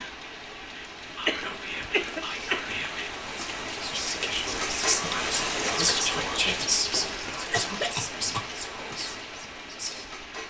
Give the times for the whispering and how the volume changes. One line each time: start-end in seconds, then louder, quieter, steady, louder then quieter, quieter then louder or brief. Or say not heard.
0.6-10.1 louder then quieter.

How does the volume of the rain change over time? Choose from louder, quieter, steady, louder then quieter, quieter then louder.
louder then quieter.